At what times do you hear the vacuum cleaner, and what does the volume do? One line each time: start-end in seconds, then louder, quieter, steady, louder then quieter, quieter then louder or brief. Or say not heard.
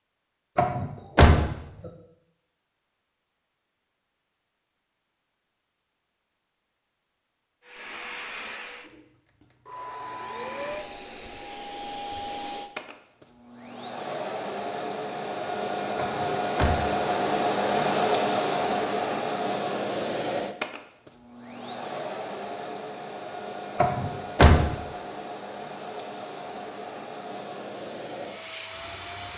7.6-29.3 louder then quieter.